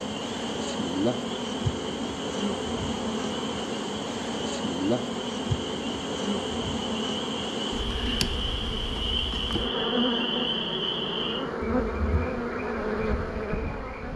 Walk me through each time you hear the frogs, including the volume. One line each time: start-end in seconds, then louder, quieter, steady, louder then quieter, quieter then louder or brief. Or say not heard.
0.0-13.9 louder then quieter.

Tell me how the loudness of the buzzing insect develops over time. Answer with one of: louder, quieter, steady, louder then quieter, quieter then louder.
steady.